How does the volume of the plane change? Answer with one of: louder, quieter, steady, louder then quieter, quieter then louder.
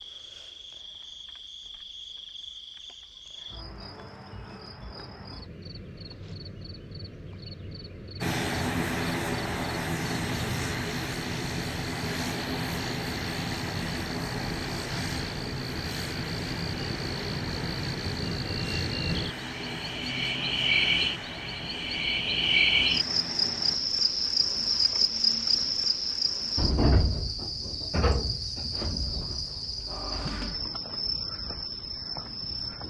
quieter.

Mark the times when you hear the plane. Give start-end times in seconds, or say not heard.
8.2-23.8.